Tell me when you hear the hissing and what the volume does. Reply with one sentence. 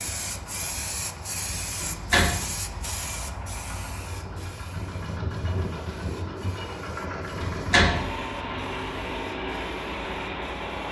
The hissing can be heard from 0.0 to 10.8 s, getting quieter.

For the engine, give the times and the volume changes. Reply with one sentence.
You can hear the engine from 0.0 to 10.8 s, getting louder.